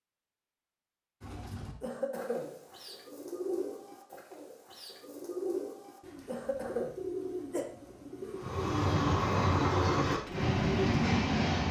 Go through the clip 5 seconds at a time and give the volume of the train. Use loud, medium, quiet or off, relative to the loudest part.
off, loud, loud.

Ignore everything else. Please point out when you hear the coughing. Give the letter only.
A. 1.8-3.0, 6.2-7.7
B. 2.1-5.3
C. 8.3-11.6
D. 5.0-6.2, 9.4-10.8
A.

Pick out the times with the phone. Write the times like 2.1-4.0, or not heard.
not heard.